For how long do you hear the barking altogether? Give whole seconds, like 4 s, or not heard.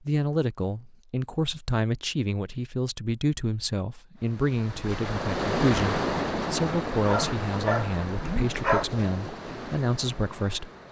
2 s.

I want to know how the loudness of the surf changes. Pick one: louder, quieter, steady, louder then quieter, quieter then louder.
quieter.